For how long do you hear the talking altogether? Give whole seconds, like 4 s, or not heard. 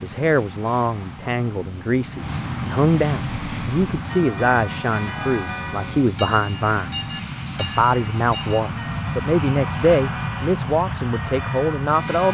12 s.